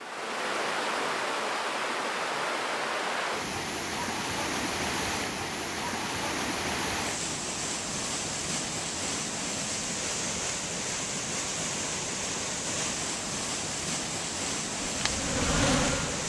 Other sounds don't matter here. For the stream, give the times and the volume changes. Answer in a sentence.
You can hear the stream from 0.0 to 16.2 s, at a steady volume.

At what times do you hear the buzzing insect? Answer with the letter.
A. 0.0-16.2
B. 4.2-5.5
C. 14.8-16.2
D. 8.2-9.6
C.